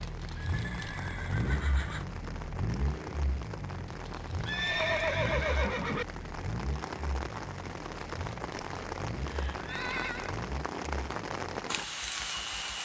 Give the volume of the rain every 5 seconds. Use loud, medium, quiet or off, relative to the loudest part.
medium, loud, loud.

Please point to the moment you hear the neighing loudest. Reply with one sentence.
The loudest moment of the neighing is at 5 seconds.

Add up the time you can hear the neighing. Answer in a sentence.
You can hear the neighing for 5 seconds altogether.